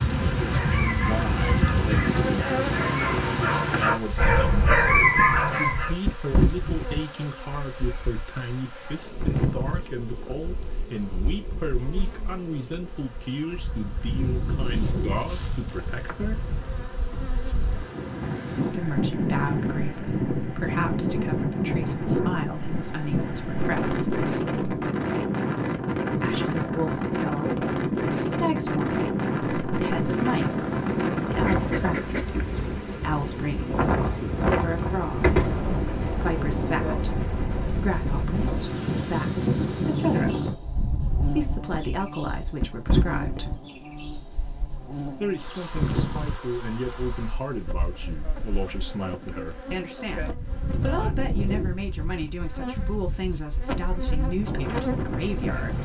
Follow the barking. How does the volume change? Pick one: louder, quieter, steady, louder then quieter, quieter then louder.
louder.